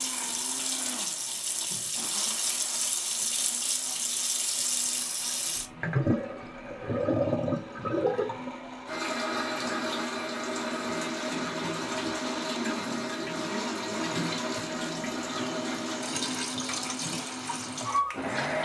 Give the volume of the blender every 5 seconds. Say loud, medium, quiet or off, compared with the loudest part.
medium, medium, loud, loud.